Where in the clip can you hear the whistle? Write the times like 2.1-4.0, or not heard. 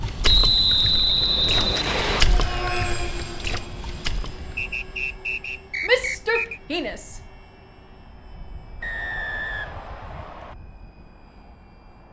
0.2-2.2, 4.5-6.6, 8.8-10.6.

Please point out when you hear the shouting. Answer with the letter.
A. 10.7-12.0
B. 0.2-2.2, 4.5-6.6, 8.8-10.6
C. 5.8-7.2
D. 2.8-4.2
C.